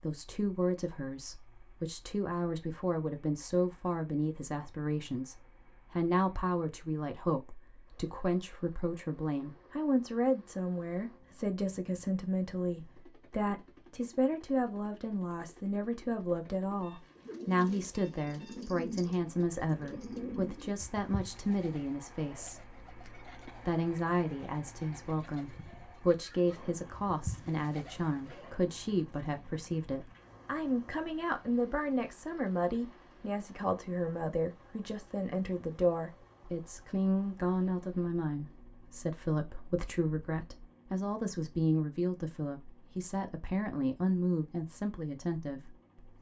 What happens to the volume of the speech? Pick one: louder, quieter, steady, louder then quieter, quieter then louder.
steady.